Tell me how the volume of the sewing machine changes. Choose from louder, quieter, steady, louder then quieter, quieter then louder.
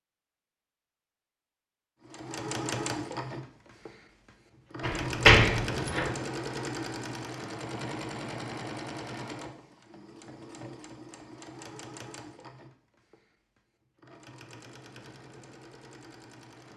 quieter.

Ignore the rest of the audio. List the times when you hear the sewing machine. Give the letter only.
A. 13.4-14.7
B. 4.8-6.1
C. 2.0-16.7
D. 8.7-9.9
C.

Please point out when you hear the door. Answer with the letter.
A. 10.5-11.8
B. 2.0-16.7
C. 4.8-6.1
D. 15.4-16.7
C.